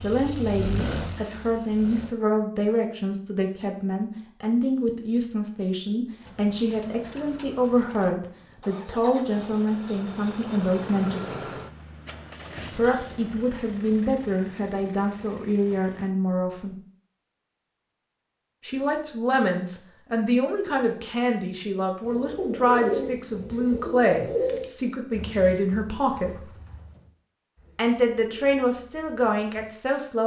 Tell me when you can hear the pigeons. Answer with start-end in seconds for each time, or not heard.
22.1-29.7.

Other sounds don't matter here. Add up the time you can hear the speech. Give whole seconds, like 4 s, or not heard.
26 s.